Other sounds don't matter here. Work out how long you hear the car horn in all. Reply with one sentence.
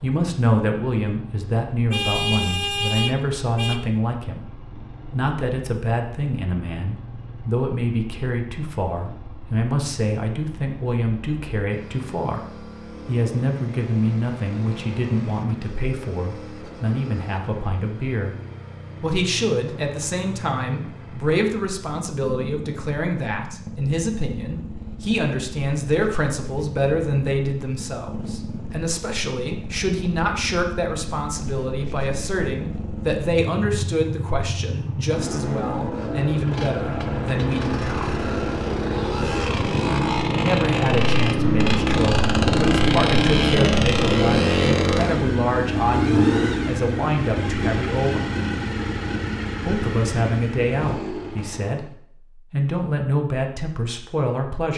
The car horn can be heard for 2 seconds in total.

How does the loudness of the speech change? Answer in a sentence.
The volume of the speech stays about the same.